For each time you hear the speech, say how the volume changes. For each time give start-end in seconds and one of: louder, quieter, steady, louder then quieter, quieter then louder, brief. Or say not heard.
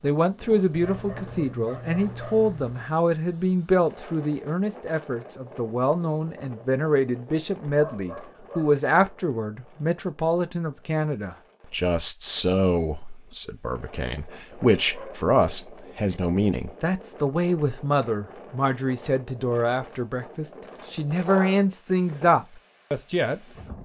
0.0-23.8 steady.